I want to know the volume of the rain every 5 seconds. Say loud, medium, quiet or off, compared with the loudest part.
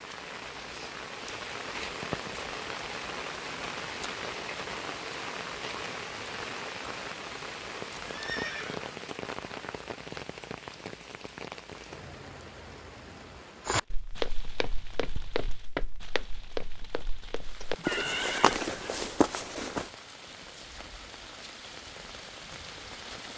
loud, loud, medium, quiet, medium.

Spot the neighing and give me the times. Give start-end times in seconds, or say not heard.
8.1-9.1, 17.6-18.6.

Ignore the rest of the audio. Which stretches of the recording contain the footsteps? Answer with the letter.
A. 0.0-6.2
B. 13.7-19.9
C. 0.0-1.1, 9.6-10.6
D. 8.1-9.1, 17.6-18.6
B.